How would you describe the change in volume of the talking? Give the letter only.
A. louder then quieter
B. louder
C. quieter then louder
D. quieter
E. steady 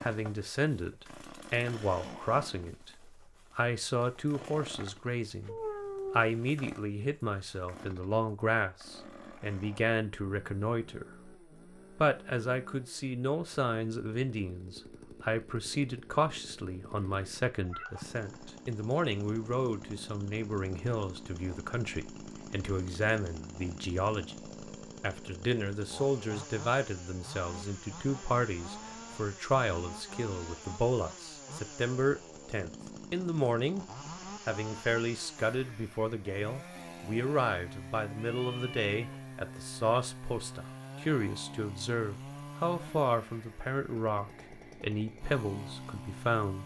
E.